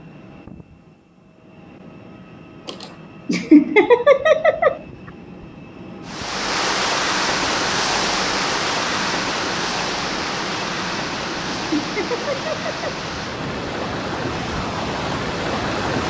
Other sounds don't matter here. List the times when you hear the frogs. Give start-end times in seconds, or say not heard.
not heard.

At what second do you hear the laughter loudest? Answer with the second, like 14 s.
4 s.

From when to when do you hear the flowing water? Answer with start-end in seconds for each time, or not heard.
6.0-16.0.